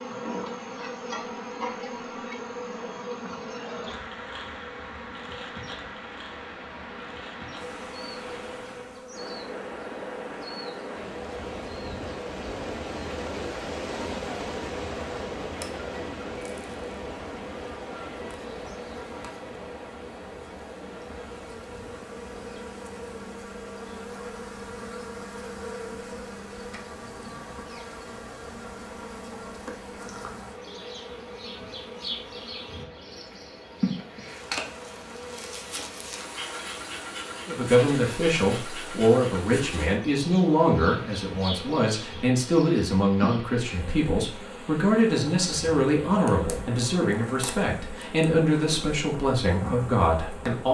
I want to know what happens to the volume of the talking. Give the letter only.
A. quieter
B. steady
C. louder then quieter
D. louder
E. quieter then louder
B.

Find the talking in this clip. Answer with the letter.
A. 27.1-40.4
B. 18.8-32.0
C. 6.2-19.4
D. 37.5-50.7
D.